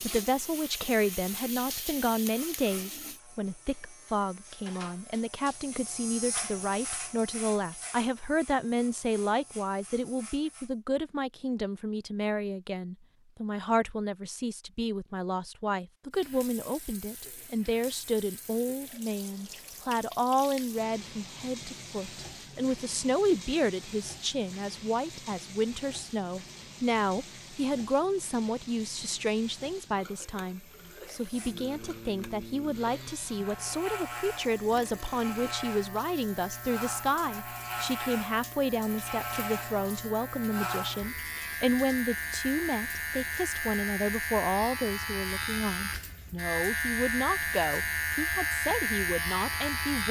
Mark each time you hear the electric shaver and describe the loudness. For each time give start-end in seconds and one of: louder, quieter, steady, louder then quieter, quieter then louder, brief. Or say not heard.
0.0-10.8 louder then quieter
31.1-50.0 louder.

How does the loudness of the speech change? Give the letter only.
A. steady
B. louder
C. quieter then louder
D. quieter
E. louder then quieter
A.